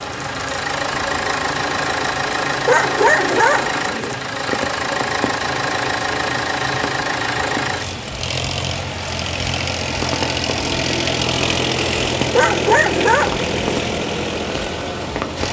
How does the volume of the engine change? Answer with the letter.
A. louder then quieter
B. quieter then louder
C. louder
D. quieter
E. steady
E.